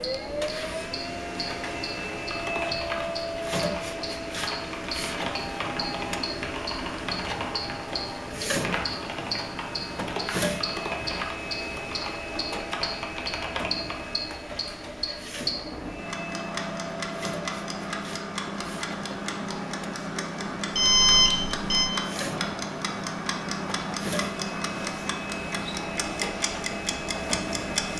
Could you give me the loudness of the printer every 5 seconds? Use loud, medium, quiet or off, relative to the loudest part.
loud, loud, loud, medium, medium, loud.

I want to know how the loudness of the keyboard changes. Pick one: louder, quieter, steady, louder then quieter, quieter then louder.
steady.